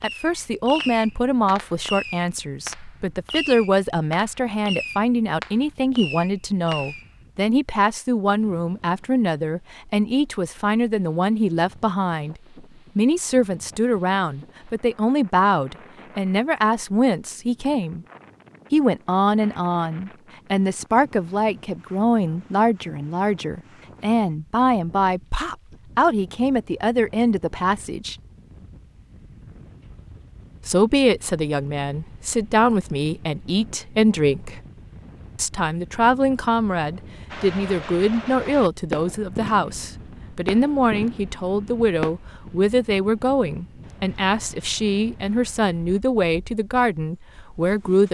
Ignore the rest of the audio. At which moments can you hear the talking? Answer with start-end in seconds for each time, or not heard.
0.0-18.1, 18.7-28.1, 30.6-34.6, 35.4-48.0.